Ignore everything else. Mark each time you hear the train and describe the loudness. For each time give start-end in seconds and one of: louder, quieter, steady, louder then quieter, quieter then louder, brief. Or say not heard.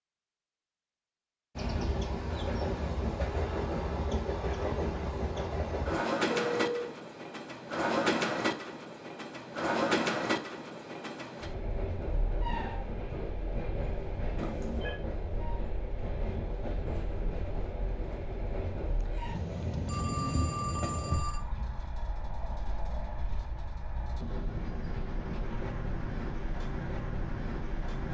1.6-28.1 quieter.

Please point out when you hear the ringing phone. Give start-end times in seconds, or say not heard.
6.3-6.9, 14.3-15.0, 19.9-21.4.